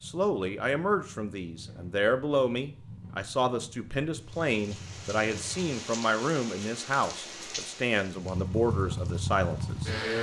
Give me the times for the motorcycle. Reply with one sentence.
The motorcycle can be heard from 0.0 to 5.7 s and from 8.1 to 10.1 s.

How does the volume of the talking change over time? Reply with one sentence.
The volume of the talking stays about the same.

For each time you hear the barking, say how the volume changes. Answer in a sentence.
You can't hear the barking here.